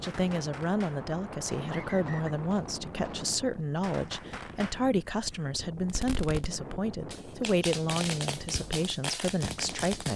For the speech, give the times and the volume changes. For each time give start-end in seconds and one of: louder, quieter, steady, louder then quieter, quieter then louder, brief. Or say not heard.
0.0-10.1 steady.